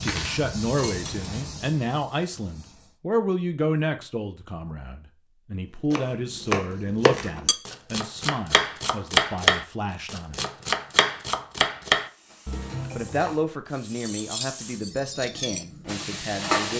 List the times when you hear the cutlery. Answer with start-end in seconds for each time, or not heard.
0.0-1.3, 12.2-16.7.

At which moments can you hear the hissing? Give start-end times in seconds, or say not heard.
0.0-3.0, 11.9-16.7.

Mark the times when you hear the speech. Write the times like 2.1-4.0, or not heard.
0.0-10.4, 12.9-16.7.